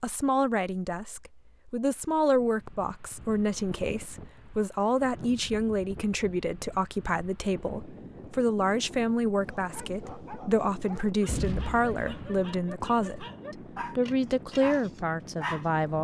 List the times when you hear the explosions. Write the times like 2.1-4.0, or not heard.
11.2-12.5.